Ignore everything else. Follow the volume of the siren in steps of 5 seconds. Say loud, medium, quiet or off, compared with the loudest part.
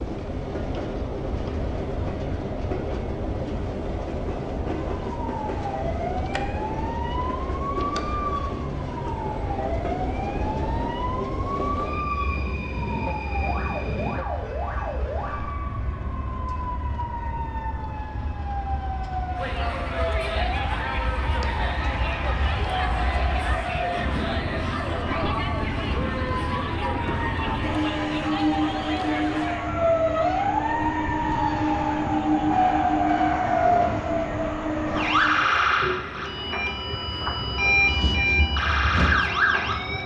off, medium, medium, medium, medium, medium, loud, loud.